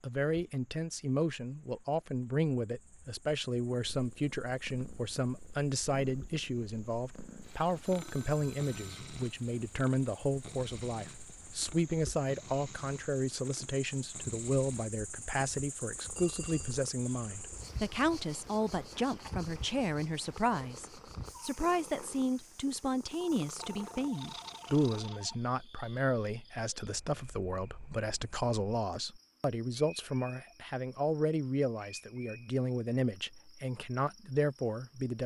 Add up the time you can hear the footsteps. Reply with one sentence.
The footsteps can't be heard in this clip.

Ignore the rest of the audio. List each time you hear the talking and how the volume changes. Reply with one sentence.
The talking can be heard from 0.0 to 35.2 s, at a steady volume.